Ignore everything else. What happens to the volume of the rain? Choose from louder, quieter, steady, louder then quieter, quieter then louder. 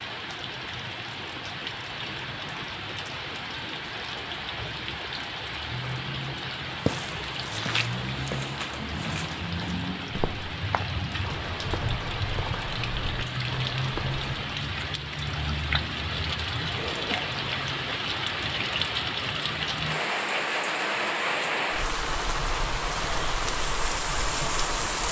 louder.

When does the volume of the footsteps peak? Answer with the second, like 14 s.
7 s.